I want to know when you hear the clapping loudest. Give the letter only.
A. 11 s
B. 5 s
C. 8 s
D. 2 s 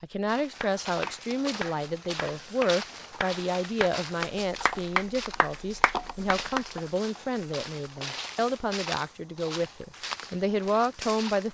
B.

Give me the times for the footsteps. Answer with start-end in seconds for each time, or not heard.
0.2-11.4.